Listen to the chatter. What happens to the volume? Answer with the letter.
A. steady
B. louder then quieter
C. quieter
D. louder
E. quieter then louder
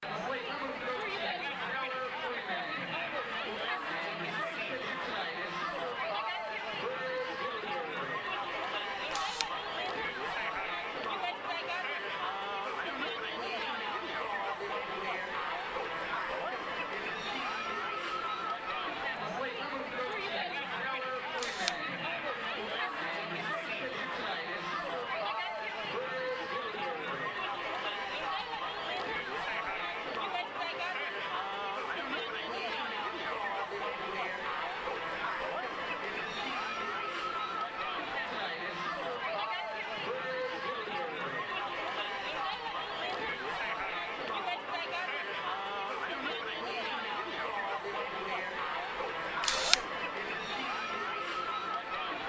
A.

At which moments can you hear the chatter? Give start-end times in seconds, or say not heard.
0.0-52.2.